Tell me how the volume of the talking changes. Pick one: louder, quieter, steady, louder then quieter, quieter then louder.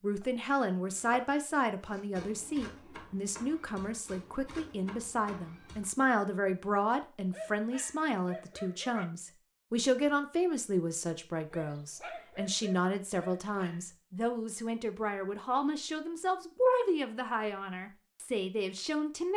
steady.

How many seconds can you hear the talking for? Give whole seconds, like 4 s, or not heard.
19 s.